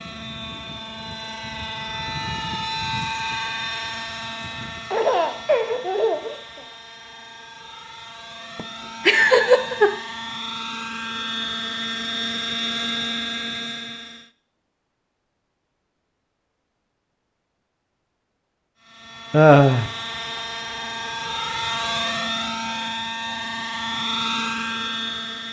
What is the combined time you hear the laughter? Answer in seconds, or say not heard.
4 s.